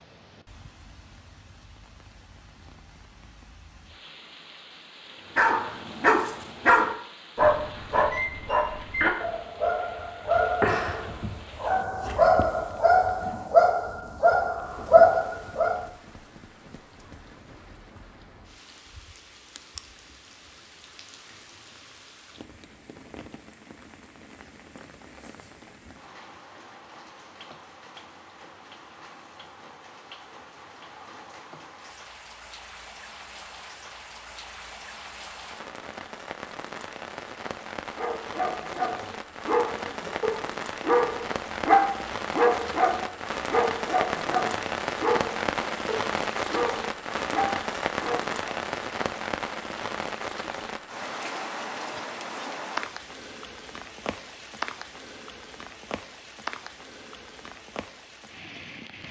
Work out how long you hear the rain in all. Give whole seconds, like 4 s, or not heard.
59 s.